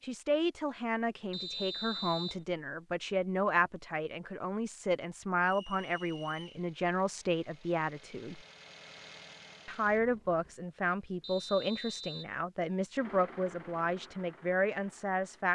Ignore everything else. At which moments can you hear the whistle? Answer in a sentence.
You can hear the whistle from 1.3 to 2.5 s, from 5.4 to 6.7 s and from 11.2 to 12.3 s.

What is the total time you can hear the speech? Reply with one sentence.
You can hear the speech for 14 seconds altogether.